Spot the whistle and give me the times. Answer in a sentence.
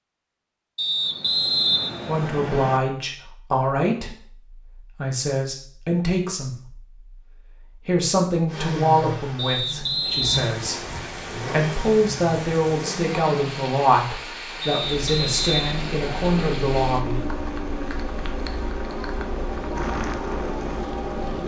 The whistle can be heard from 0.8 to 2.8 s, from 9.3 to 10.6 s and from 14.6 to 16.6 s.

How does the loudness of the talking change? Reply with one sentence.
The volume of the talking stays about the same.